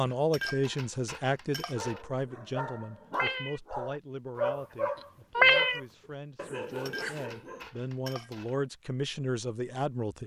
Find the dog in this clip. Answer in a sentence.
The dog can be heard from 1.8 to 7.7 s.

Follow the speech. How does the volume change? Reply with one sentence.
The loudness of the speech goes down, then up.